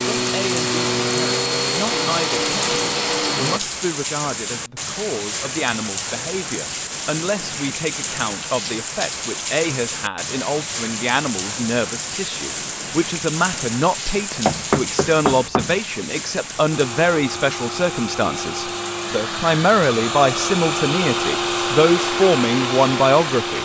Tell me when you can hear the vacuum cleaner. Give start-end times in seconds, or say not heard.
0.0-3.6, 16.7-23.5.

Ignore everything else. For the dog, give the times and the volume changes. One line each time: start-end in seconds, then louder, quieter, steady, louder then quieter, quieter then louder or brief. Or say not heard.
not heard.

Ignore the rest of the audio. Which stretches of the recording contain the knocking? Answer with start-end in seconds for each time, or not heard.
14.3-15.8.